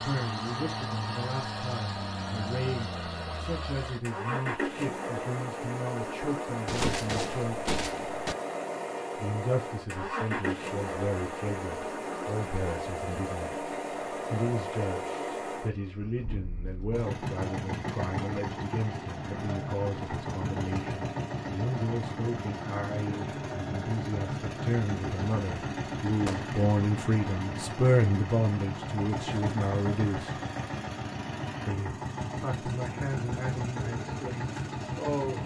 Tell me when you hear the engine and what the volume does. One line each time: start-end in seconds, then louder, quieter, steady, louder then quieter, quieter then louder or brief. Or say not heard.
0.0-35.4 steady.